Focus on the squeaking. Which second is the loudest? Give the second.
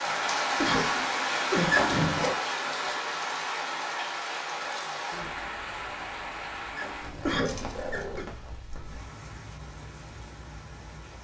2 s.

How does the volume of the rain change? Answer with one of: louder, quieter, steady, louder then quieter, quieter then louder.
quieter.